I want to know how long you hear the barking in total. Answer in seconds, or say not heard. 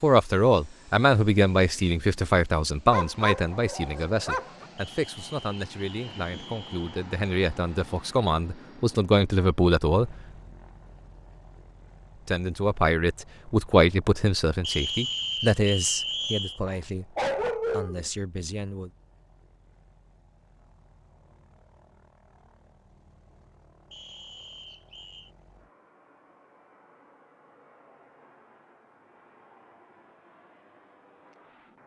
3 s.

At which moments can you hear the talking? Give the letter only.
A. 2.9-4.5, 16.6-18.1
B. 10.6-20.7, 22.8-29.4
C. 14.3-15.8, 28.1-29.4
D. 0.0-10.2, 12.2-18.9
D.